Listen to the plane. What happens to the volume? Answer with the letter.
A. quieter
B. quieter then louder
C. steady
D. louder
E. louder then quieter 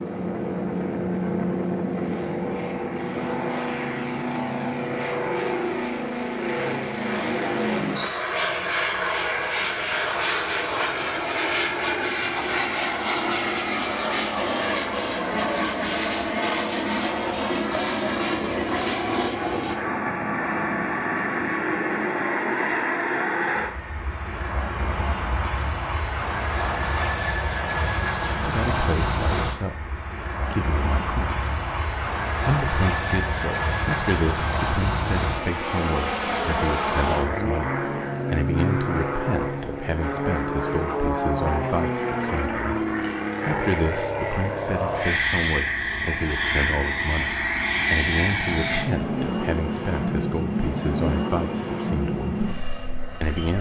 C.